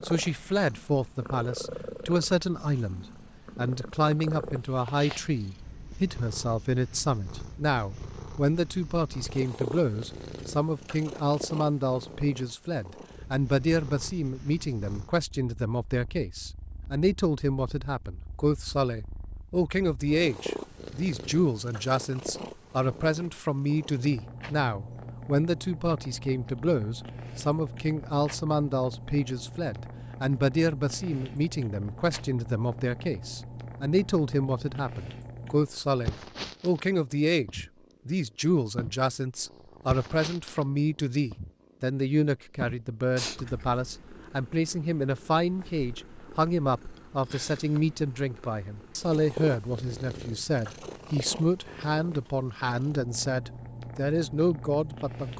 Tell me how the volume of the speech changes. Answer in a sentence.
The volume of the speech stays about the same.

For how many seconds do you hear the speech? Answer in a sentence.
The speech can be heard for 55 seconds in total.